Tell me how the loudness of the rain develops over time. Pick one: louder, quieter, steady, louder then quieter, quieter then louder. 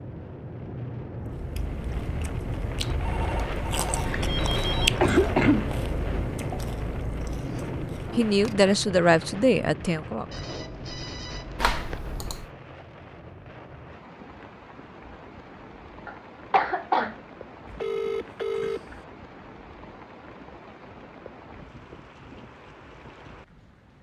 quieter.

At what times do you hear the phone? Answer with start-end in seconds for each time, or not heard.
2.9-4.9, 10.3-12.3, 17.6-19.0.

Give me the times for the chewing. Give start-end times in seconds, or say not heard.
1.2-8.8.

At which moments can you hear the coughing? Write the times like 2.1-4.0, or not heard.
4.0-5.7, 11.6-12.4, 16.1-17.1.